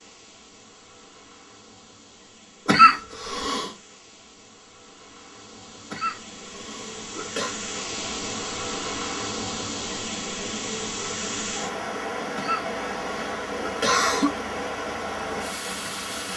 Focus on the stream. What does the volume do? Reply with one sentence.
The loudness of the stream goes up.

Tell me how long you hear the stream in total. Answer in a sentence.
You can hear the stream for 16 seconds altogether.